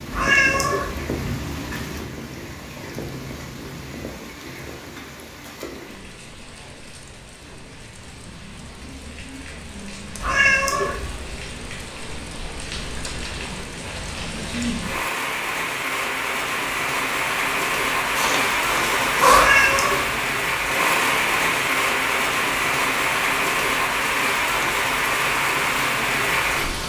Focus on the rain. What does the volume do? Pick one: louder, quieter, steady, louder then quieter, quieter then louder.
quieter then louder.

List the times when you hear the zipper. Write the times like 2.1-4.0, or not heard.
18.1-19.5.